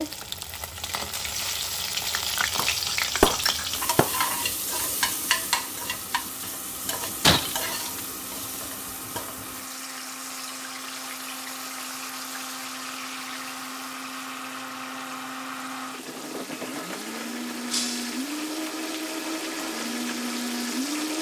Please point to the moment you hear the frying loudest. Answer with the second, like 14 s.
3 s.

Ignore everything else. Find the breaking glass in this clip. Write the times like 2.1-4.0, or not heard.
2.5-4.2, 7.2-8.0, 17.7-18.2.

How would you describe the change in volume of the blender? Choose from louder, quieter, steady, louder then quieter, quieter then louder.
louder.